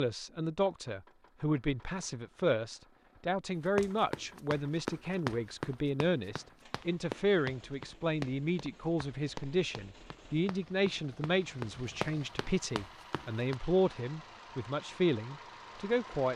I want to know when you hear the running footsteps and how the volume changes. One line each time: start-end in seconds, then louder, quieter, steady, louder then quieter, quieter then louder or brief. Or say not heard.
3.8-13.6 quieter then louder.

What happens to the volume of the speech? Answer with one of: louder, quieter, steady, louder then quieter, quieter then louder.
steady.